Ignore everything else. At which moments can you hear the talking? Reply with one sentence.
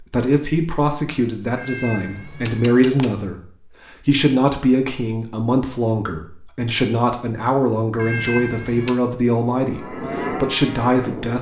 The talking can be heard from 0.0 to 11.3 s.